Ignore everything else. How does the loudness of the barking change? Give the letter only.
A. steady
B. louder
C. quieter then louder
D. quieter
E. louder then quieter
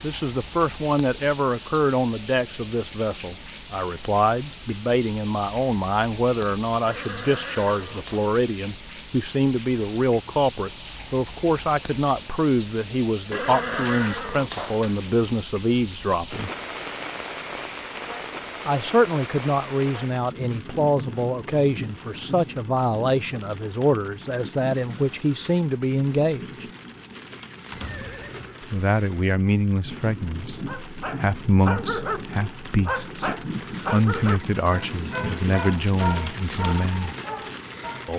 D.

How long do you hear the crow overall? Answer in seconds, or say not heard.
not heard.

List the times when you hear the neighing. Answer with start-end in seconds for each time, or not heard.
6.8-8.2, 13.3-15.2, 27.7-28.6.